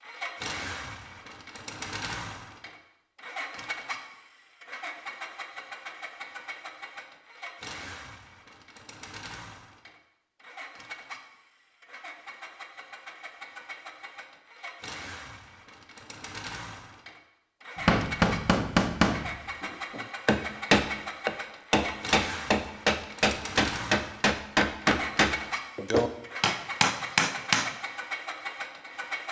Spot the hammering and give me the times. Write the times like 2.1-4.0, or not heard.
17.8-27.8.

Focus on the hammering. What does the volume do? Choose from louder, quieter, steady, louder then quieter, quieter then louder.
steady.